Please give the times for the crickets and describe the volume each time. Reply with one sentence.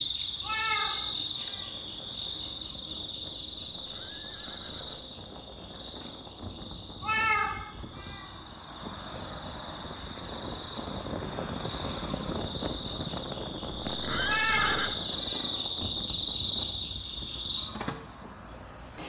The crickets can be heard from 0.0 to 19.0 s, getting quieter then louder.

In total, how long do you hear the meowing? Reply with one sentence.
The meowing can be heard for 4 seconds in total.